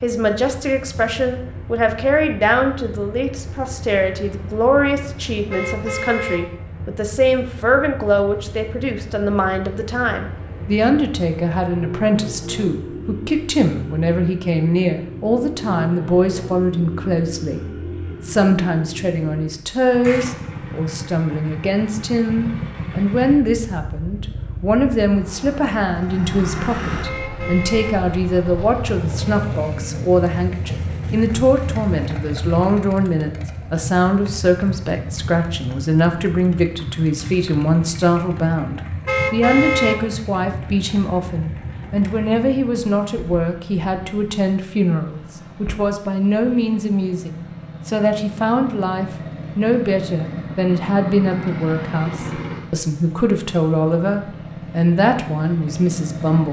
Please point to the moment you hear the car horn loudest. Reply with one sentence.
The volume of the car horn peaks at 40 seconds.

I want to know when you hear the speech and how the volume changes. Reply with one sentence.
You can hear the speech from 0.0 to 56.4 s, at a steady volume.